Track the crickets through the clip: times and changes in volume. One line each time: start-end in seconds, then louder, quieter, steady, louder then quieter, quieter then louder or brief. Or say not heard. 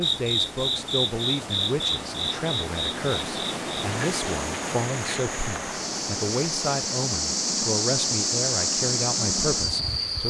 0.0-10.2 quieter then louder.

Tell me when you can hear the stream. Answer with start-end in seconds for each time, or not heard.
0.0-10.2.